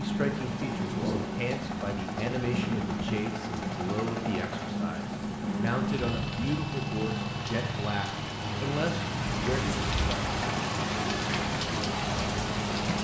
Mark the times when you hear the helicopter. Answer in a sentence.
You can hear the helicopter from 0.0 to 12.9 s.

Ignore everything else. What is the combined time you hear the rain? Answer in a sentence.
You can hear the rain for 13 seconds altogether.